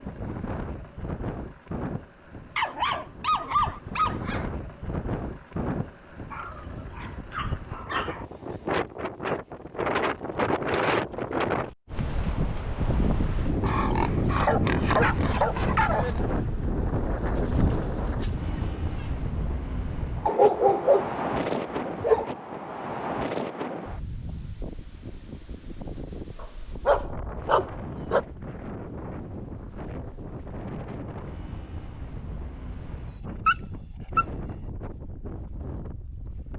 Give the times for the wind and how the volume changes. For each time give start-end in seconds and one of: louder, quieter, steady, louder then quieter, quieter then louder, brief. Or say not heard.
0.0-36.5 louder then quieter.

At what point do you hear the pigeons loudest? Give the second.
18 s.